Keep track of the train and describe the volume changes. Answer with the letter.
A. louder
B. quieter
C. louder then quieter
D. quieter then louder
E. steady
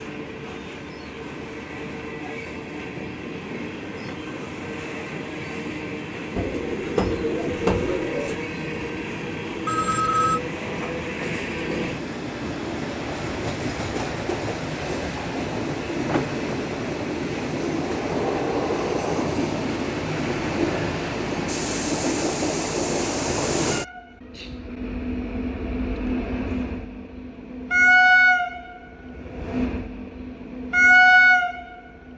A.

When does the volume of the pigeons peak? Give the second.
8 s.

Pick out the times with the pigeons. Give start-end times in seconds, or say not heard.
6.3-8.3.